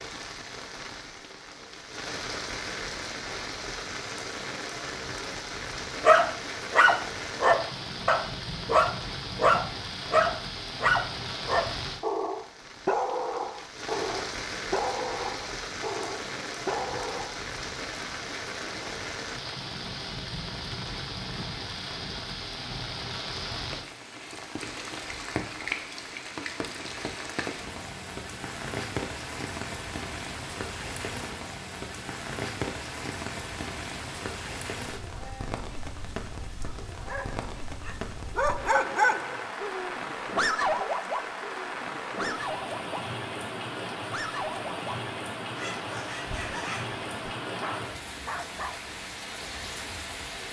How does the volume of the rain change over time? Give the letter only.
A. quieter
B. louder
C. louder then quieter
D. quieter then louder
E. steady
E.